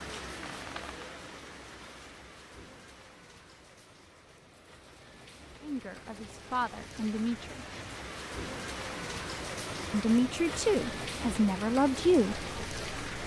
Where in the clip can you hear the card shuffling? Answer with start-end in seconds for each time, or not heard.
0.4-1.1.